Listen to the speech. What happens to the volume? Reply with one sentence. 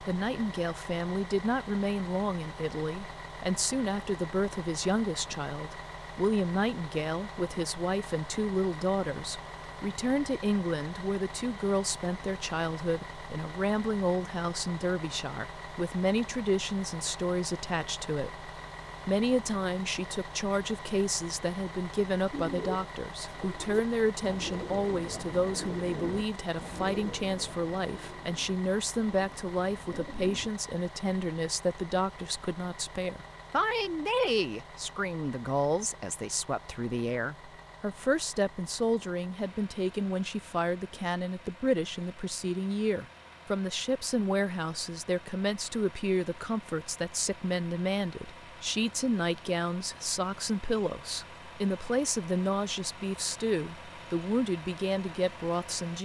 The volume of the speech stays about the same.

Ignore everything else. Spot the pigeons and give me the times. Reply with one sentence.
The pigeons can be heard from 22.3 to 30.5 s.